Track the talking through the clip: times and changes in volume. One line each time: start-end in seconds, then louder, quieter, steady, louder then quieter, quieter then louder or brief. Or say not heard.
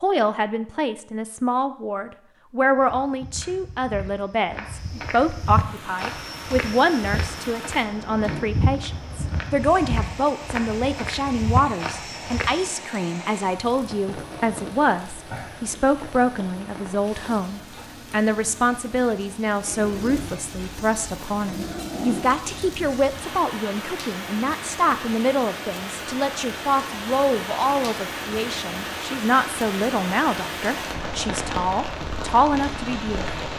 0.0-33.2 steady.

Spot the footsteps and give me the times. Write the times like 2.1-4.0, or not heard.
2.8-12.8.